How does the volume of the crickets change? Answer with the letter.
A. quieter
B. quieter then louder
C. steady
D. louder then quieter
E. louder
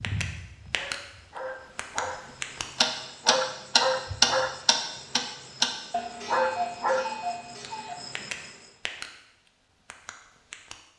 E.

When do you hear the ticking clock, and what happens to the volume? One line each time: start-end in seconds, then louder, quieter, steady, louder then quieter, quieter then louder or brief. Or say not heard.
0.0-9.1 louder then quieter
9.9-10.8 brief.